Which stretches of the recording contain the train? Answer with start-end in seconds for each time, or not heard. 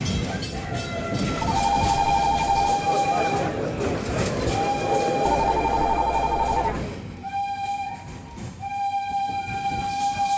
0.0-10.3.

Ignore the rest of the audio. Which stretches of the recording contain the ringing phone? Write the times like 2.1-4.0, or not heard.
1.4-2.6, 5.2-6.9.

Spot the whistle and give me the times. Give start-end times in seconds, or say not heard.
not heard.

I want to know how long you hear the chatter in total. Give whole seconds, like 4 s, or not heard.
7 s.